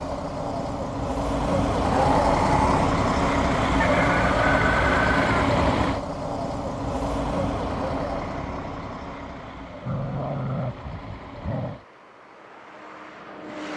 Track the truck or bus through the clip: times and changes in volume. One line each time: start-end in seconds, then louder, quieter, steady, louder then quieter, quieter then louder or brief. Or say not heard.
0.0-13.7 quieter.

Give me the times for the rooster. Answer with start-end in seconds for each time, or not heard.
3.8-5.3.